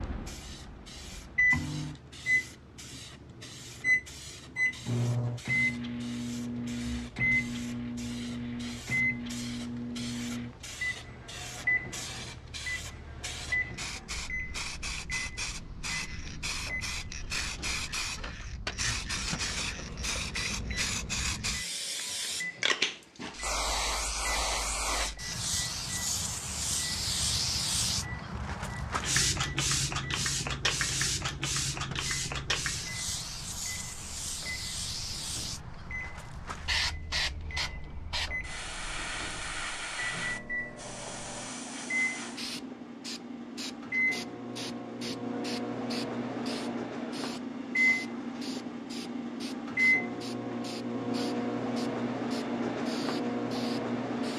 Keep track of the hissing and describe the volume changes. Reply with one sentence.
The loudness of the hissing goes up, then down.